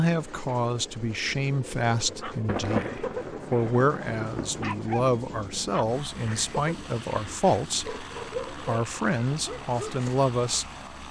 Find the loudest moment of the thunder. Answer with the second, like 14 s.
3 s.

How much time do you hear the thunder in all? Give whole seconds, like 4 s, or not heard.
2 s.